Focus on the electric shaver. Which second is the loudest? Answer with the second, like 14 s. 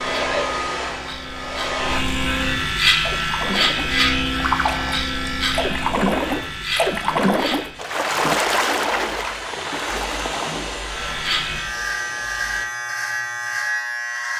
3 s.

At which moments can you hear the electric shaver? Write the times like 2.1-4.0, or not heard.
0.0-7.8, 10.8-14.3.